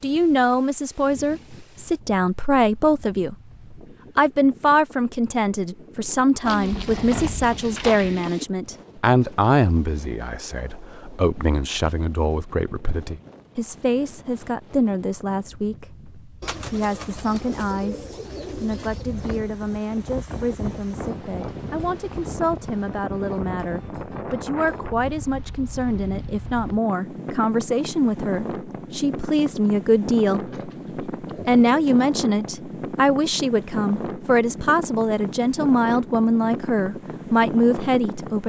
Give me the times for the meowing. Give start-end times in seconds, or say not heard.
not heard.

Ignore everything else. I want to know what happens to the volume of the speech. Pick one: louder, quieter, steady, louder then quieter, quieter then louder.
quieter then louder.